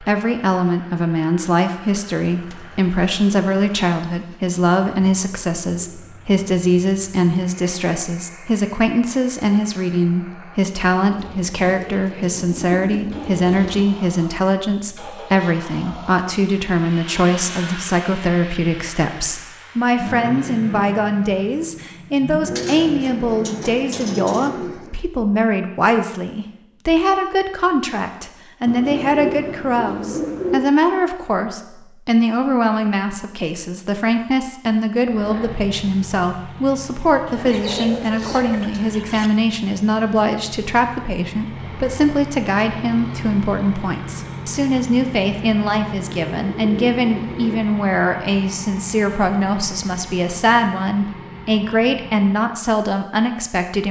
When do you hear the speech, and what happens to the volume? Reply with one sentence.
The speech can be heard from 0.0 to 53.8 s, at a steady volume.